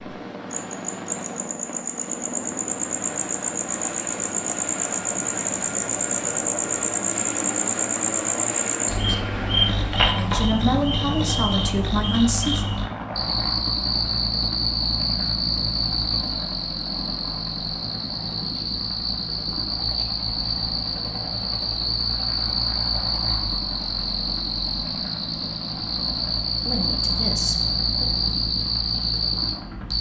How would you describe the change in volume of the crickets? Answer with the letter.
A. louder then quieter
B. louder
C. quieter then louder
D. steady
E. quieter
D.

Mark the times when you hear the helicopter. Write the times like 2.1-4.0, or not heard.
0.0-29.9.